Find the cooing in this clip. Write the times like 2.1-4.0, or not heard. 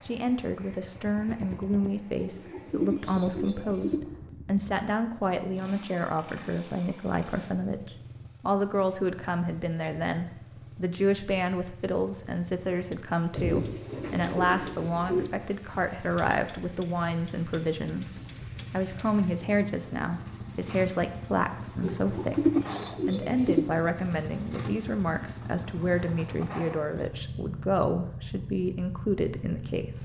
2.1-4.0, 13.3-15.3, 21.8-23.6.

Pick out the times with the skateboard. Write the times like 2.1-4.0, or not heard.
not heard.